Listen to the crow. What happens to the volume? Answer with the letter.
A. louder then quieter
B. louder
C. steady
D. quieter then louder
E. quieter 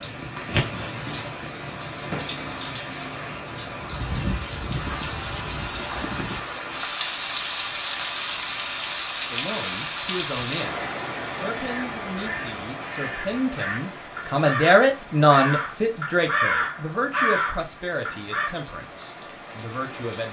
B.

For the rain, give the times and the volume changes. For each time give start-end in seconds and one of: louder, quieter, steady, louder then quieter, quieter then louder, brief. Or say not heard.
0.0-20.2 quieter.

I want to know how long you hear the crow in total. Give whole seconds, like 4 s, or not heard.
7 s.